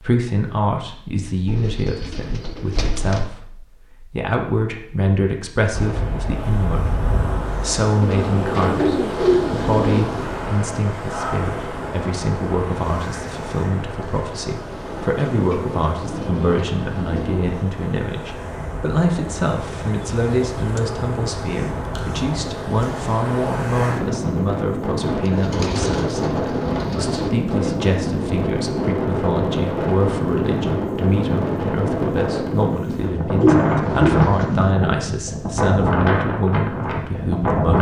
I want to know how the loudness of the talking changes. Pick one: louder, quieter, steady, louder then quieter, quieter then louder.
steady.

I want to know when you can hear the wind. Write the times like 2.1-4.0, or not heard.
5.7-37.7.